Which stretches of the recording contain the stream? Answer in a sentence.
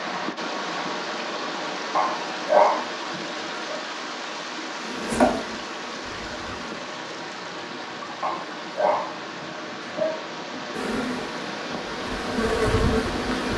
You can hear the stream from 0.0 to 13.5 s.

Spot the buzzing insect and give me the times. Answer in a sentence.
You can hear the buzzing insect from 4.8 to 6.8 s and from 10.7 to 13.5 s.